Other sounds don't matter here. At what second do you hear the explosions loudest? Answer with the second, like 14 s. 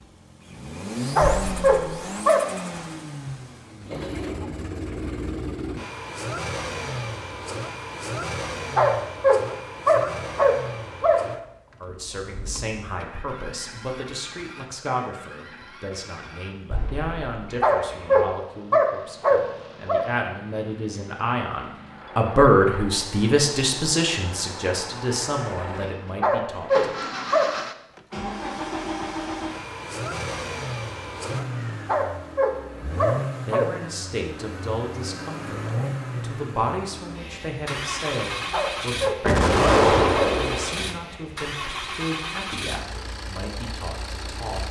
40 s.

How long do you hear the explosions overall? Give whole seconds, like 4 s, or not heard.
3 s.